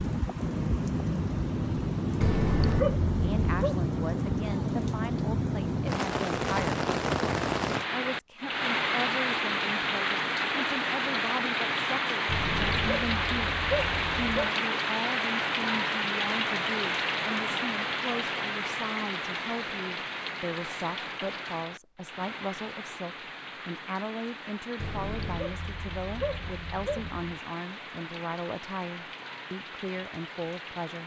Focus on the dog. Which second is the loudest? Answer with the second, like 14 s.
3 s.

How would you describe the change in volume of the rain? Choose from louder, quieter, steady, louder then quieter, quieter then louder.
quieter.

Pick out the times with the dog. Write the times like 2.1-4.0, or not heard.
2.2-3.8, 12.2-14.5, 24.8-27.3.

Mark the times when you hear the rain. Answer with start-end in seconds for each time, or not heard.
0.0-31.0.